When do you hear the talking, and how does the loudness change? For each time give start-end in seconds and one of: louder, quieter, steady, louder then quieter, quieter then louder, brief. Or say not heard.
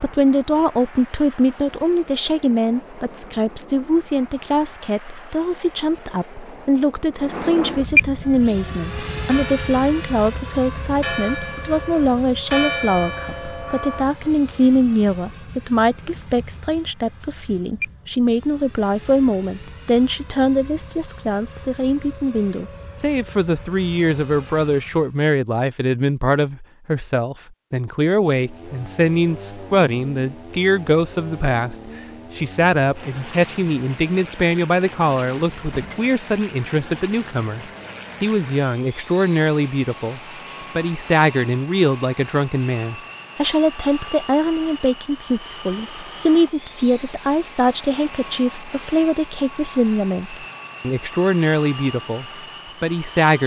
0.0-53.4 steady.